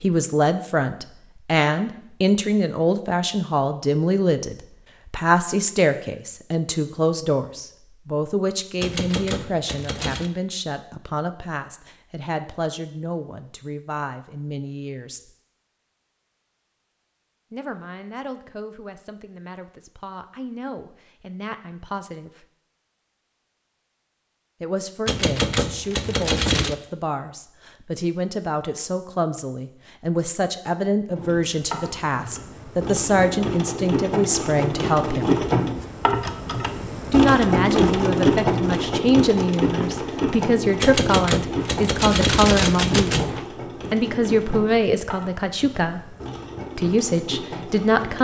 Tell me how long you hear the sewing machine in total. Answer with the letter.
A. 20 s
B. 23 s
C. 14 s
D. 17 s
D.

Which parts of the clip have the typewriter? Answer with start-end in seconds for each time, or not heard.
8.8-10.3, 25.1-26.8, 40.8-43.4.